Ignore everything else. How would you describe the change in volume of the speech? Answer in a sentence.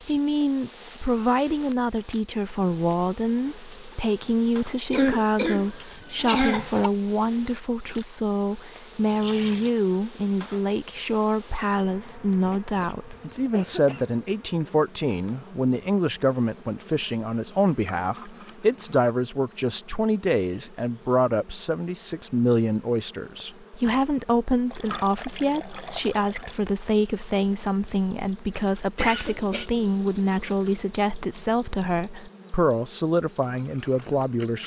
The loudness of the speech stays about the same.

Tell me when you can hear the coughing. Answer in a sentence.
You can hear the coughing from 4.9 to 6.9 s, from 12.4 to 14.1 s and from 28.9 to 29.6 s.